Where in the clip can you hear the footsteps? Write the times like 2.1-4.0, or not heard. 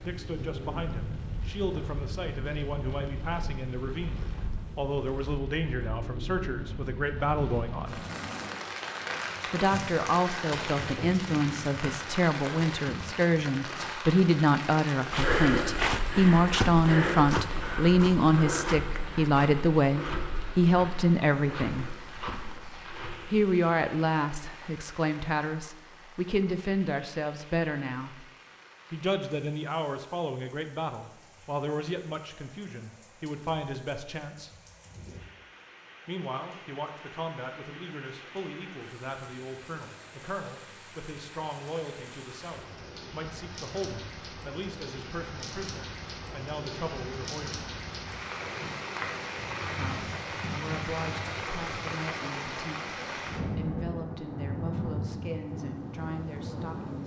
15.1-23.5.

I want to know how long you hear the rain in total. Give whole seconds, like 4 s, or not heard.
57 s.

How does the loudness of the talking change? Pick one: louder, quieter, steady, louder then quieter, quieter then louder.
louder then quieter.